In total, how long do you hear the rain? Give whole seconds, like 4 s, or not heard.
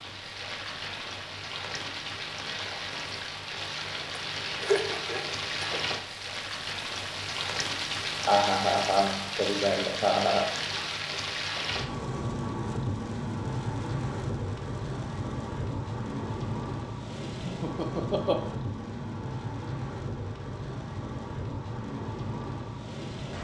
23 s.